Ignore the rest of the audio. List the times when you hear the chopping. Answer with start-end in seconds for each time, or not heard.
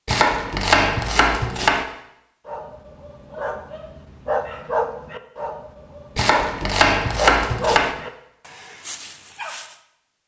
0.1-1.9, 6.2-8.0.